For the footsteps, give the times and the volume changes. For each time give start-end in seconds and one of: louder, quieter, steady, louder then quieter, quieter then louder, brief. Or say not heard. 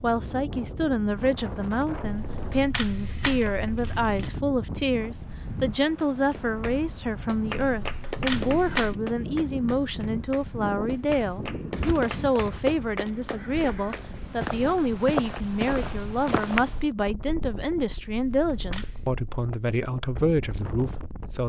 11.8-16.9 louder.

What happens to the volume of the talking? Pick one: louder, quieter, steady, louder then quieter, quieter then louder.
steady.